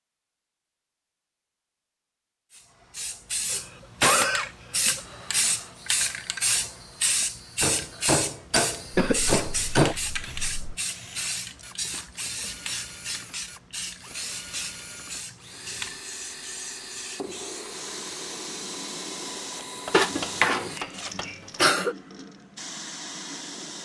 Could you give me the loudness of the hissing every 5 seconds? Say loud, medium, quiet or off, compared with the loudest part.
loud, loud, medium, medium, medium.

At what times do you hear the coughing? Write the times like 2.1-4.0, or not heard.
3.5-5.0, 8.9-10.8, 19.9-21.9.